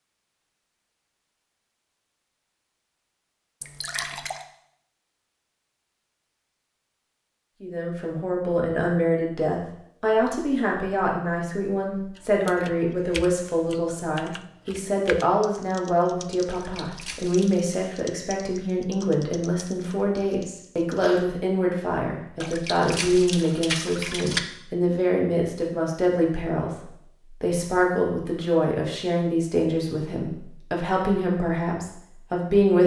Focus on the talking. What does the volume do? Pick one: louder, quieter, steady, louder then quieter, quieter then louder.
steady.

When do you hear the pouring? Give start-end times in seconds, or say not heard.
3.6-4.5, 16.4-17.6, 22.4-24.4.